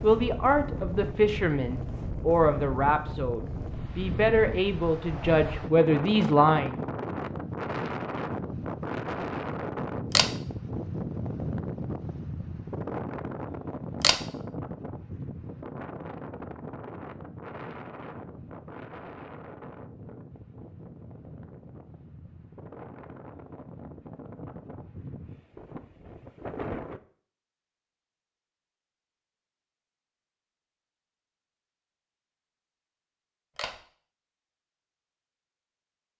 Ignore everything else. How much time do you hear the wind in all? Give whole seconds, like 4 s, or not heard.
27 s.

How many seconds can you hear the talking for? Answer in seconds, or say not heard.
7 s.